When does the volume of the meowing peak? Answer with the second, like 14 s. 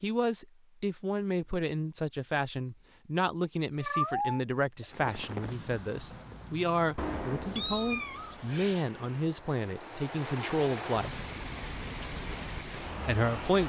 4 s.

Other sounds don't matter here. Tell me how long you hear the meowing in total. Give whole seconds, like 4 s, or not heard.
3 s.